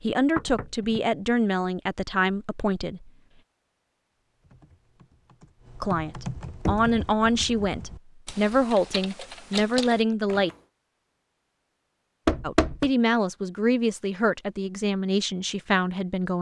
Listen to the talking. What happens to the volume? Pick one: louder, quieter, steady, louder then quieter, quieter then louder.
steady.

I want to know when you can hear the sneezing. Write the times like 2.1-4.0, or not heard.
not heard.